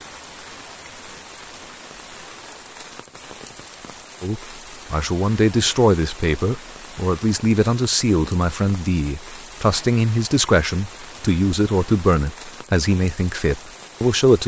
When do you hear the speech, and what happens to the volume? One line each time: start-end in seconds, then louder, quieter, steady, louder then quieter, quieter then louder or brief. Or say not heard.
4.2-14.4 steady.